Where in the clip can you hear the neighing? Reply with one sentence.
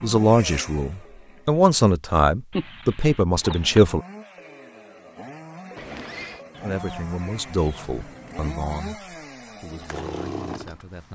The neighing can be heard from 5.8 to 6.5 s.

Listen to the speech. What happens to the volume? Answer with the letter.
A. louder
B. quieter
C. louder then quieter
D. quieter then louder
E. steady
B.